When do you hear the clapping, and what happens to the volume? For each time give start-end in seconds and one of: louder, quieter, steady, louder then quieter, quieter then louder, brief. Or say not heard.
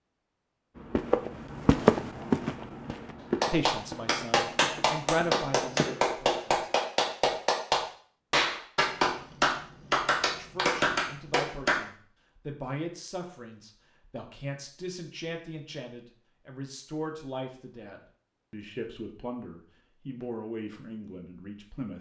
3.4-11.8 steady.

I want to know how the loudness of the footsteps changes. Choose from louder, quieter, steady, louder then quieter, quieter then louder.
quieter.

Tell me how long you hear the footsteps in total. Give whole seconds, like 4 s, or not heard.
5 s.